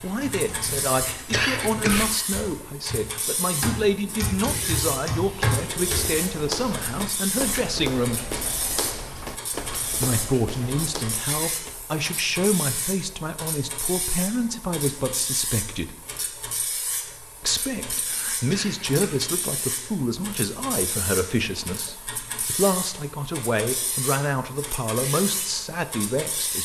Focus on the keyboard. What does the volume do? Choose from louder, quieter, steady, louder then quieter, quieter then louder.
louder.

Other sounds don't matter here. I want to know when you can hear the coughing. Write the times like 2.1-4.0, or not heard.
1.3-2.1, 18.4-19.2.